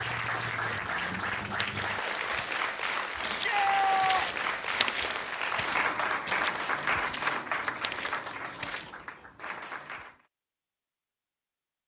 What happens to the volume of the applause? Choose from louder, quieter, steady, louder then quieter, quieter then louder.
quieter.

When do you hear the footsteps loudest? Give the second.
5 s.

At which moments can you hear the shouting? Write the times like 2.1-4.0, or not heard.
3.2-4.5.